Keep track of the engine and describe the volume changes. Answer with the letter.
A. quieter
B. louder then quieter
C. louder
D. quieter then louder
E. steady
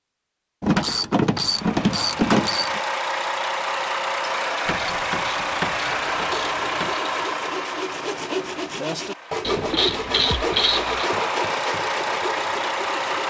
D.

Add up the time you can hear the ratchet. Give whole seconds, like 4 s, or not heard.
6 s.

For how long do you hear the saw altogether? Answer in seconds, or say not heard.
7 s.